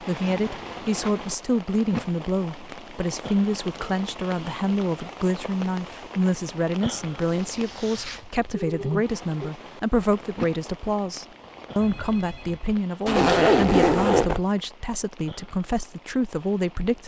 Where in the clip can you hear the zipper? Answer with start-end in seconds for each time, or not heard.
0.2-1.1, 7.2-8.3, 13.1-14.4.